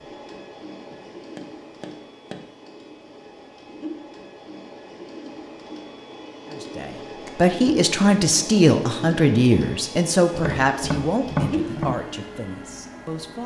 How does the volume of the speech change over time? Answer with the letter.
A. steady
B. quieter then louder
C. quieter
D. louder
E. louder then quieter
C.